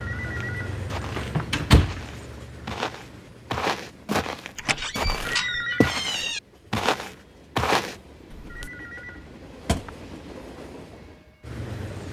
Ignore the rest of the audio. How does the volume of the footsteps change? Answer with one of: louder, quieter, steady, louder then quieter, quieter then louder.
louder.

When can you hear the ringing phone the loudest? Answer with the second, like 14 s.
6 s.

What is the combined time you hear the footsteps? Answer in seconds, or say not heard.
8 s.